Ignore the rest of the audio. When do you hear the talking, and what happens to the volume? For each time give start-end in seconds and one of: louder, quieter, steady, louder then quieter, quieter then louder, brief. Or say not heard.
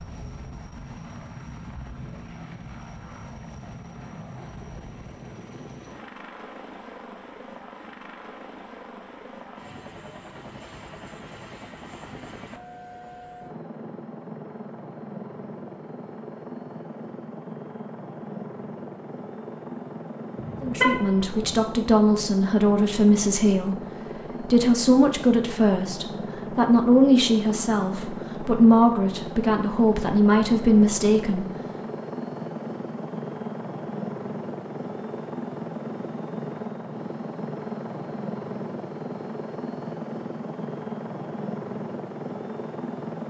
20.6-31.5 steady.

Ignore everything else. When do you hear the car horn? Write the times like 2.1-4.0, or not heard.
20.4-21.6.